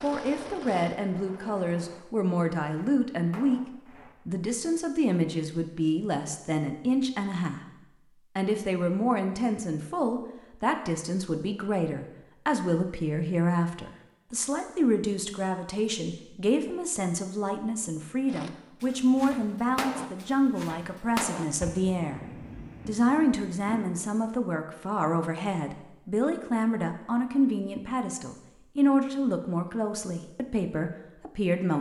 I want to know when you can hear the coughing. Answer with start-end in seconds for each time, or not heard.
not heard.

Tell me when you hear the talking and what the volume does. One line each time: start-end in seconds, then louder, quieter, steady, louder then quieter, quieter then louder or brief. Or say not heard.
0.0-7.6 steady
8.3-31.7 steady.